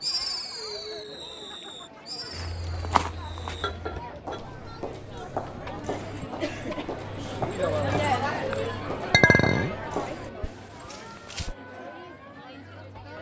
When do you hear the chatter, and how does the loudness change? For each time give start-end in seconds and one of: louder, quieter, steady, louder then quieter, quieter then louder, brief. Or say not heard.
0.0-13.1 louder then quieter.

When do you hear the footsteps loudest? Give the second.
3 s.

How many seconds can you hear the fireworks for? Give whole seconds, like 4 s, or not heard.
4 s.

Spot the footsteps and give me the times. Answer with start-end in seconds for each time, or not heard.
2.3-11.6.